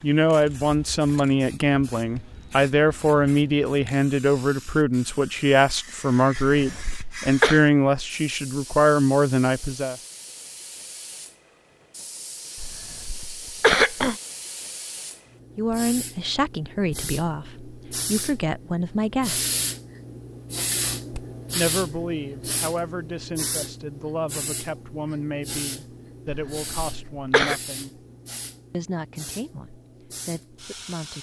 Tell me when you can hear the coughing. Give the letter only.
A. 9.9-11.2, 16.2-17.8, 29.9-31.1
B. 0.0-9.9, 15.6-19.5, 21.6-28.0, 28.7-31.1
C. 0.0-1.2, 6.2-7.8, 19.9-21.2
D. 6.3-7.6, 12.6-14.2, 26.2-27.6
D.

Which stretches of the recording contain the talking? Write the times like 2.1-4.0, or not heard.
0.0-9.9, 15.6-19.5, 21.6-28.0, 28.7-31.1.